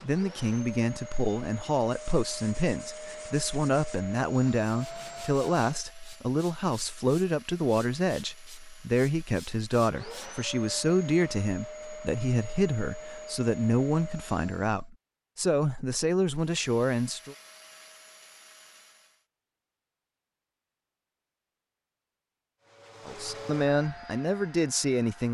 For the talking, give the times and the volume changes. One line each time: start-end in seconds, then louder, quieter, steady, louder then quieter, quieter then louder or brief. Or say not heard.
0.0-17.4 steady
23.1-25.2 brief.